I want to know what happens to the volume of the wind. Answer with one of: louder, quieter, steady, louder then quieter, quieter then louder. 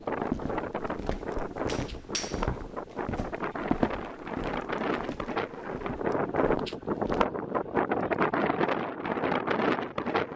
louder.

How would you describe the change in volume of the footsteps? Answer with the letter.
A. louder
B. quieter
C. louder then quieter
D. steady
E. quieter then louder
C.